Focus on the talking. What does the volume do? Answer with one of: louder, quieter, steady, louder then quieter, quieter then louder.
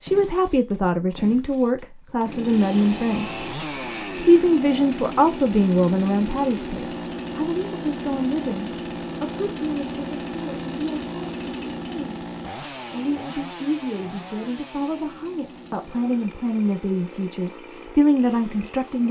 quieter then louder.